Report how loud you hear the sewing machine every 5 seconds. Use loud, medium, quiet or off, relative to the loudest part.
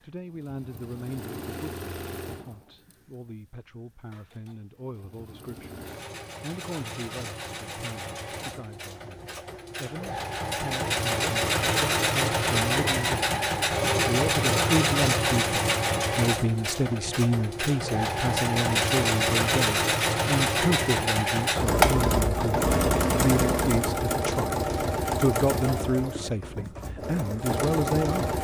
quiet, quiet, loud, loud, loud, medium.